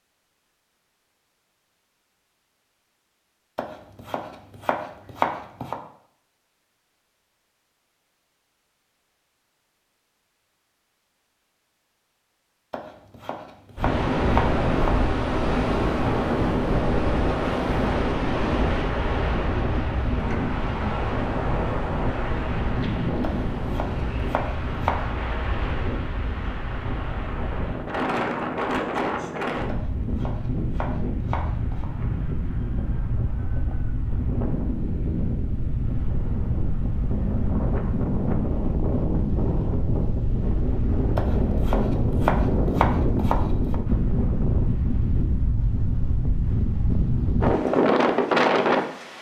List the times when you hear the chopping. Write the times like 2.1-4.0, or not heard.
3.5-5.8, 12.7-15.1, 23.2-25.1, 29.6-31.9, 41.1-43.8.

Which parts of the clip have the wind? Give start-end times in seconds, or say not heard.
13.8-49.1.